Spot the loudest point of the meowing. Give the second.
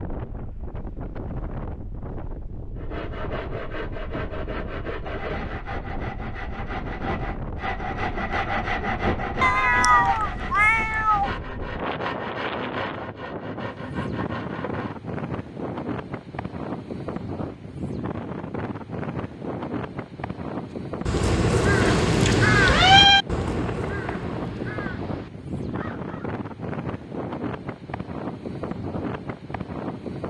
23 s.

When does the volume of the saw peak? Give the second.
9 s.